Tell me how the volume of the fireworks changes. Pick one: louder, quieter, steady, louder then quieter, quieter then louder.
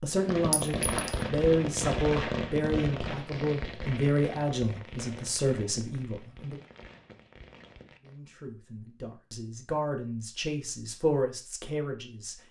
quieter.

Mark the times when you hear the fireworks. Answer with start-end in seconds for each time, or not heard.
0.1-8.2.